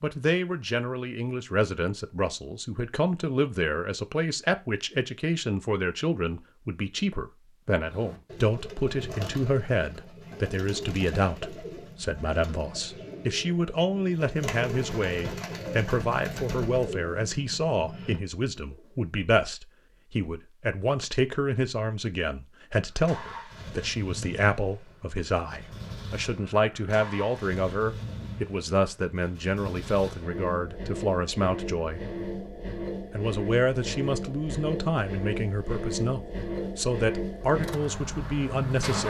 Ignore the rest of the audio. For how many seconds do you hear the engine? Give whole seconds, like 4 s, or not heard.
16 s.